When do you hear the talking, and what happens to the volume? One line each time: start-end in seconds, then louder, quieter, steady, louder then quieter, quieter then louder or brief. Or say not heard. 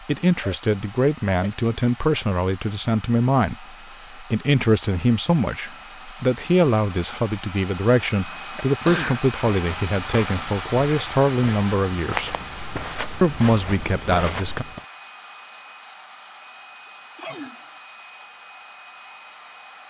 0.1-12.3 steady
13.2-14.7 brief.